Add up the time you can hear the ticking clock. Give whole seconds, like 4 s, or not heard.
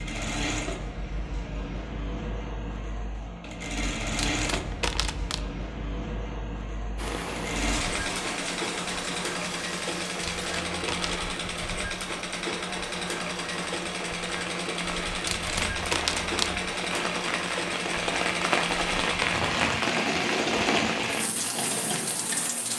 not heard.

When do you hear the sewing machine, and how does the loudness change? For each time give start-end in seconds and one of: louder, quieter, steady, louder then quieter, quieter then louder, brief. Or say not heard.
0.0-22.7 steady.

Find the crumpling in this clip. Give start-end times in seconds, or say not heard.
4.2-5.5, 10.2-11.2, 15.2-16.6.